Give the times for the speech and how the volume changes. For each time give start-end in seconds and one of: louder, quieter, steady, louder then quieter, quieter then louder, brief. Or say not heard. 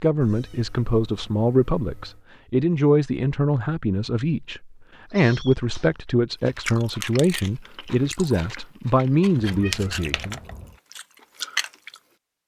0.0-10.4 steady.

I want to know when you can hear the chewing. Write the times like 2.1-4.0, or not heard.
6.4-12.0.